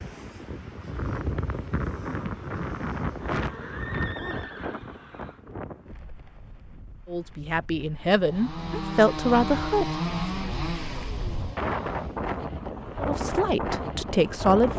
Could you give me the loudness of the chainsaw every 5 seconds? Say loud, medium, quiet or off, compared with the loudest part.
off, loud, loud.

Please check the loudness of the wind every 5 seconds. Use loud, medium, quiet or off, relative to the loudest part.
loud, quiet, loud.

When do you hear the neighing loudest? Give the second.
4 s.